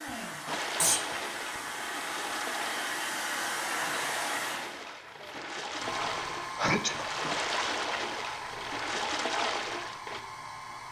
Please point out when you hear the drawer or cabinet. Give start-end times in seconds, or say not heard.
not heard.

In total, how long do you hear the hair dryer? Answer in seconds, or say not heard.
11 s.